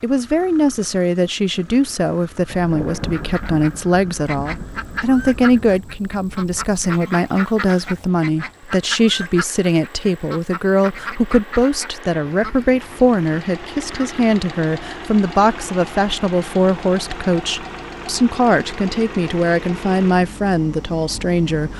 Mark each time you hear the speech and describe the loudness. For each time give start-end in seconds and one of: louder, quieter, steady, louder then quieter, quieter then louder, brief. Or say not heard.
0.0-21.7 steady.